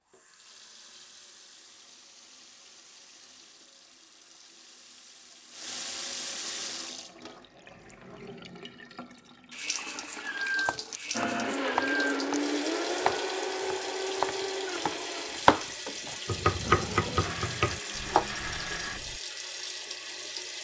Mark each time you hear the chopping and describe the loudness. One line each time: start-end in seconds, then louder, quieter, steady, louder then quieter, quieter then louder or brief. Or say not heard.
10.6-19.2 louder then quieter.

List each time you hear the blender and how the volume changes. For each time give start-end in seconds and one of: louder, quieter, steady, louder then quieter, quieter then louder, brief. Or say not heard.
11.1-19.0 quieter.